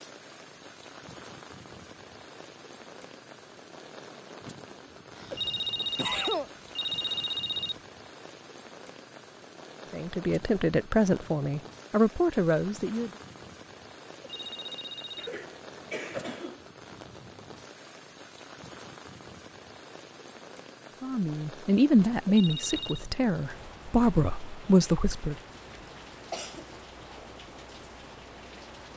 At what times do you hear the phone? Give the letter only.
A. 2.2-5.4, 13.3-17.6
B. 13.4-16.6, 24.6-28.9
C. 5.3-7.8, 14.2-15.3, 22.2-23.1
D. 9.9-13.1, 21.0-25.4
C.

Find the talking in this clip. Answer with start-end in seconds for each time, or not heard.
9.9-13.1, 21.0-25.4.